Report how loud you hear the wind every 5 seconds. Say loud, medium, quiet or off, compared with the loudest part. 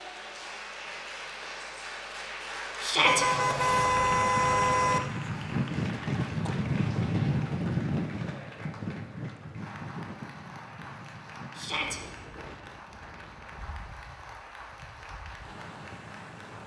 medium, loud, quiet, quiet.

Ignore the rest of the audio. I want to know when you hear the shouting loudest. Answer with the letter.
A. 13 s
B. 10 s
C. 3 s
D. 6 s
C.